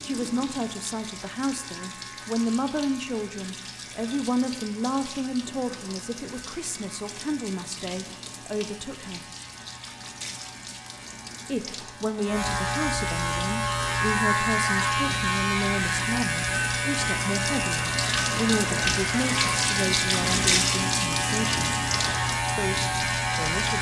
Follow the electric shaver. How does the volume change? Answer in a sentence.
The loudness of the electric shaver goes up.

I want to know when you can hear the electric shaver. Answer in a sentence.
You can hear the electric shaver from 0.0 to 23.7 s.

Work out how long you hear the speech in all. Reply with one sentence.
The speech can be heard for 21 seconds in total.